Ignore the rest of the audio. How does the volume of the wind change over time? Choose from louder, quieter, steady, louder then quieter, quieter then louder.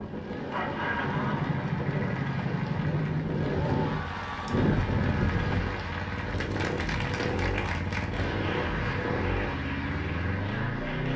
louder.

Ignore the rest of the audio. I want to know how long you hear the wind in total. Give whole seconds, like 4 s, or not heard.
6 s.